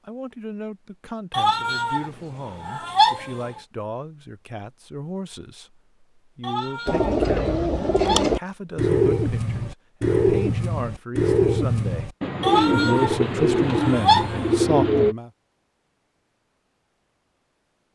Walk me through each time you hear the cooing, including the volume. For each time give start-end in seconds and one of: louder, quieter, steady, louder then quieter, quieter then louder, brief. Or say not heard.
6.8-15.2 steady.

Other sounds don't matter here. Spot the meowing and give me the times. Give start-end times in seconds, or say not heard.
1.3-3.6, 6.4-8.3, 12.4-14.5.